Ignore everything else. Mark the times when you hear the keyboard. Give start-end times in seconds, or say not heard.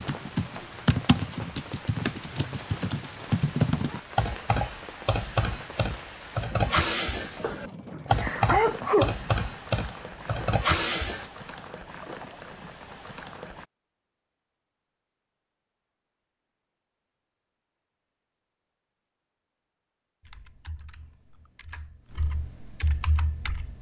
0.0-11.2, 20.2-23.7.